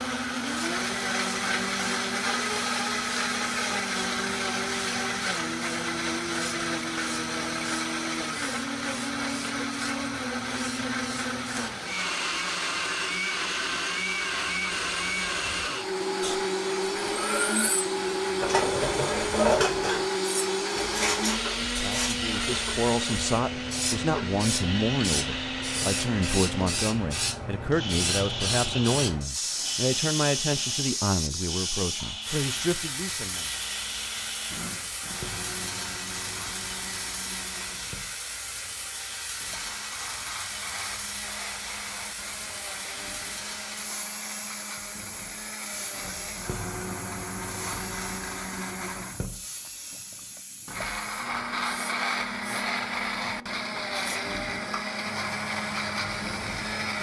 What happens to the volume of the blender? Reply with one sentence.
The loudness of the blender goes down, then up.